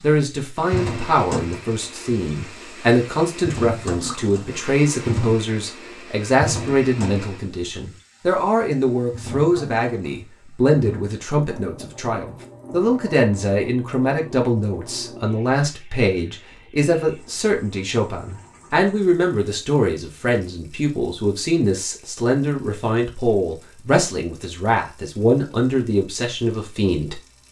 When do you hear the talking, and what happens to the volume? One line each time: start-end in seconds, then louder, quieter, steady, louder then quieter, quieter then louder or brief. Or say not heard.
0.0-27.2 steady.